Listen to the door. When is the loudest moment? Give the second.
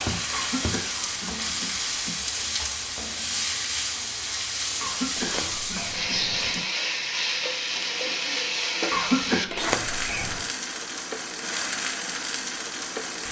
10 s.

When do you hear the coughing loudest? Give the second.
9 s.